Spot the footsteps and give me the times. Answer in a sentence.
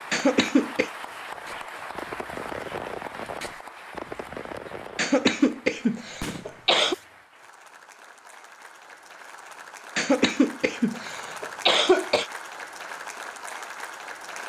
You can't hear the footsteps here.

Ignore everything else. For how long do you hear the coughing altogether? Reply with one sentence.
The coughing can be heard for 5 seconds in total.